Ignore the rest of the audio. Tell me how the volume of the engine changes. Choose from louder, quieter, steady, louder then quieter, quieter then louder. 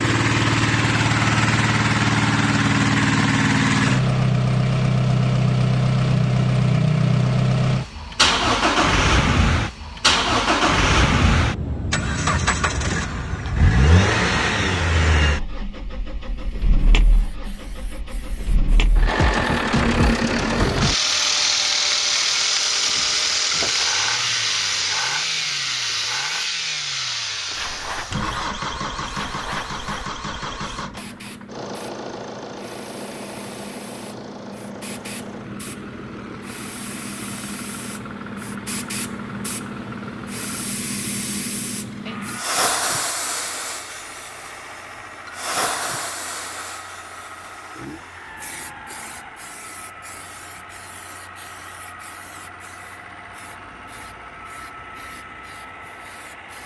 quieter.